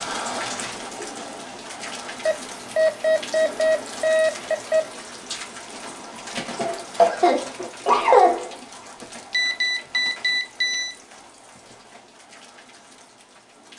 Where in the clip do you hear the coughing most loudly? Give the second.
8 s.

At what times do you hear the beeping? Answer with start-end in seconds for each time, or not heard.
2.2-4.8, 9.3-10.9.